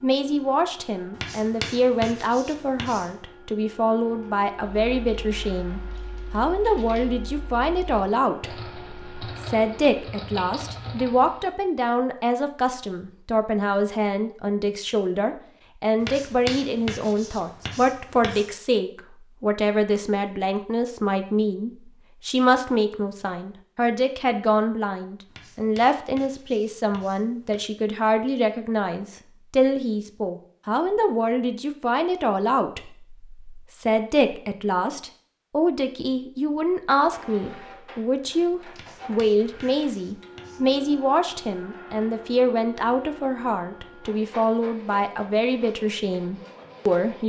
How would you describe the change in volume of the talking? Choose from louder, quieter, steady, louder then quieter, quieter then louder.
steady.